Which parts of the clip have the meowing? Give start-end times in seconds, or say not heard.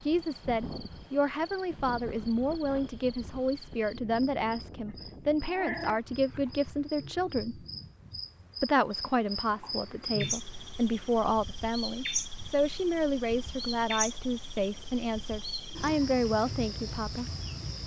5.3-6.4.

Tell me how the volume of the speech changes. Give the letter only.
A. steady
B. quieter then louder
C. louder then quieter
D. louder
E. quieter
A.